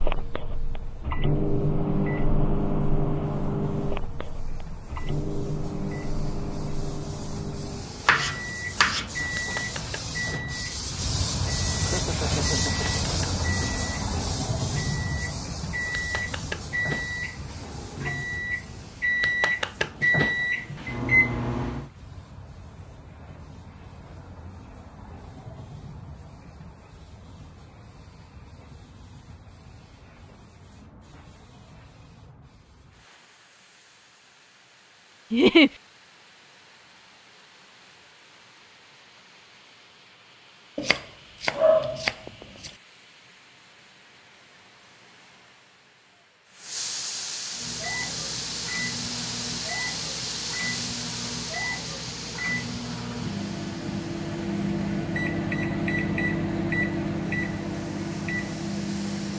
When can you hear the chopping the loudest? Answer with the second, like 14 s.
42 s.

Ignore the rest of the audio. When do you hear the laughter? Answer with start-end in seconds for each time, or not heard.
11.8-13.0, 35.3-35.7.